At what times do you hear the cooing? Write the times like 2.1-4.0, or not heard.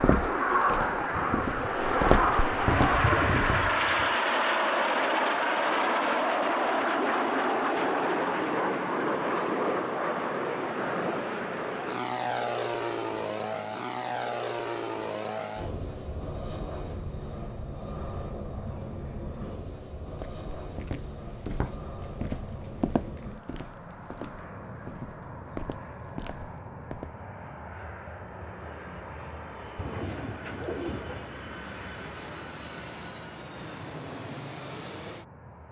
1.1-4.1, 29.8-31.4.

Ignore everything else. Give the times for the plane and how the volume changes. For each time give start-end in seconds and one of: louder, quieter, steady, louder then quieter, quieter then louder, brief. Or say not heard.
0.0-35.6 quieter.